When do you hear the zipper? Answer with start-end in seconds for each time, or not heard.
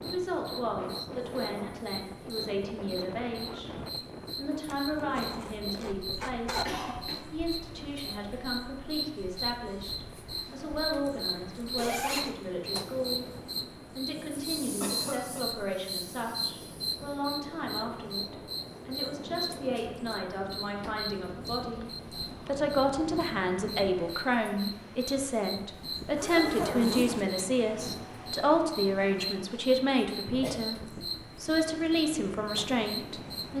4.7-6.7, 11.8-12.3, 25.9-27.4.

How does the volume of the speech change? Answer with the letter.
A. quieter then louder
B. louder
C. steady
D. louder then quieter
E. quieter
B.